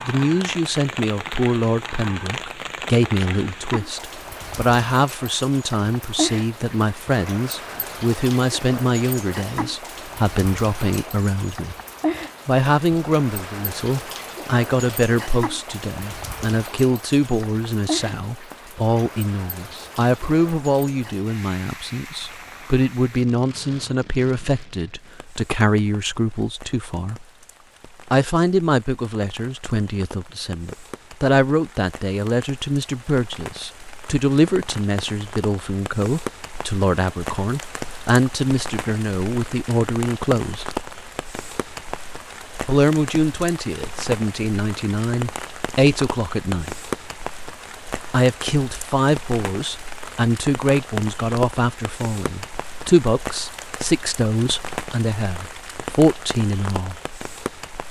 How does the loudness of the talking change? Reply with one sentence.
The loudness of the talking stays about the same.